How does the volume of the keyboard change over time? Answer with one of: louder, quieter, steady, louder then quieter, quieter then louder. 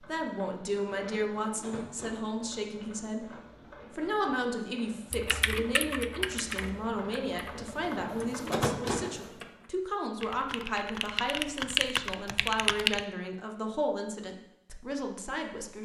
quieter then louder.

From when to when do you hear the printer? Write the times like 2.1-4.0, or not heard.
0.0-9.5.